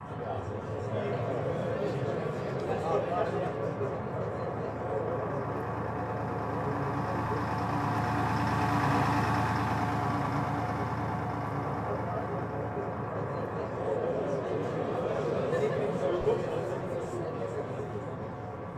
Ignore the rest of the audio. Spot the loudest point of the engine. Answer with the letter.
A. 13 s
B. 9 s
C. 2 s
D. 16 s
B.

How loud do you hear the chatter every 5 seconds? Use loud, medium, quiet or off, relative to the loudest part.
loud, medium, loud, loud.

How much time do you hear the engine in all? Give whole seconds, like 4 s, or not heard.
19 s.